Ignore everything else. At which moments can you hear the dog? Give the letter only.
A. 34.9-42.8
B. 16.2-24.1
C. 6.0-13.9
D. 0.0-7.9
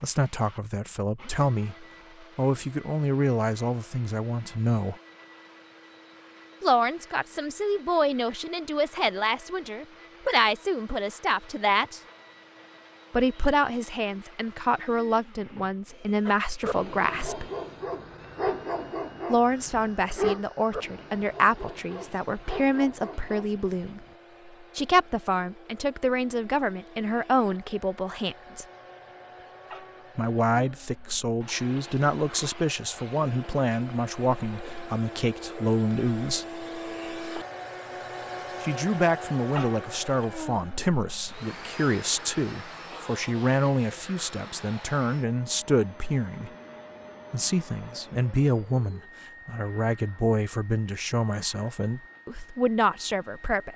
B.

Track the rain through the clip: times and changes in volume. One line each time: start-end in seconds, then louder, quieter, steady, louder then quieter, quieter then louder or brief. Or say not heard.
not heard.